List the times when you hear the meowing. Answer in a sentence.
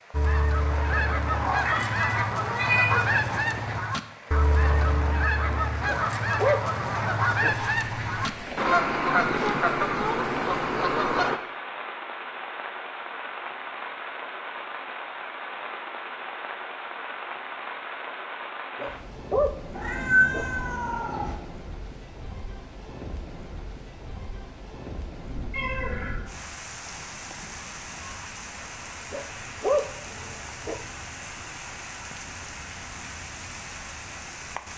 The meowing can be heard from 1.3 to 3.0 s, from 19.7 to 21.4 s and from 25.2 to 26.3 s.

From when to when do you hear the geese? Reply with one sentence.
The geese can be heard from 0.1 to 11.4 s.